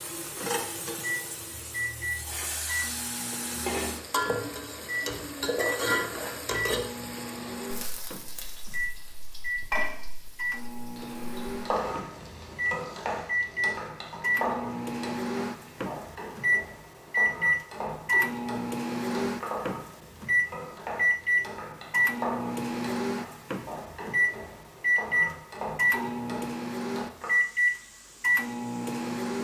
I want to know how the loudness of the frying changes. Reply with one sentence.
The loudness of the frying goes down.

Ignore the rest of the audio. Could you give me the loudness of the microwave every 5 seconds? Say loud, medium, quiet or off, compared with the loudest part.
medium, medium, medium, loud, loud, loud.